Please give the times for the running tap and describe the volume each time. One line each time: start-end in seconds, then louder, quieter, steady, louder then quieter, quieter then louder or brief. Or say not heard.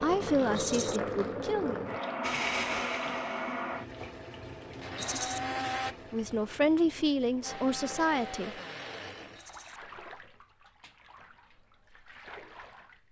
0.0-13.0 quieter.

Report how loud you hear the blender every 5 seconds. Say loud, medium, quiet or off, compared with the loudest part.
loud, loud, off.